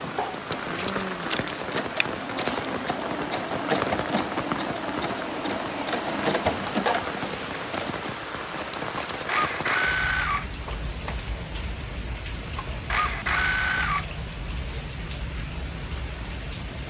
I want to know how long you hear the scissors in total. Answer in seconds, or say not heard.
3 s.